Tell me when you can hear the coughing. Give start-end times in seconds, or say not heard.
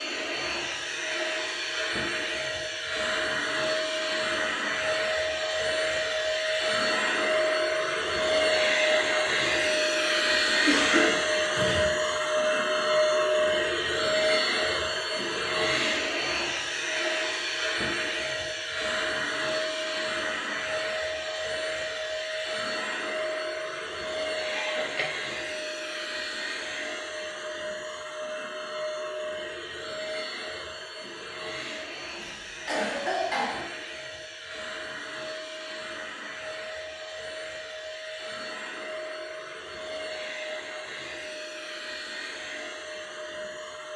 10.7-11.9, 24.5-25.4, 32.1-33.6.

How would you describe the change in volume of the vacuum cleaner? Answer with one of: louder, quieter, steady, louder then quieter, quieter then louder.
quieter.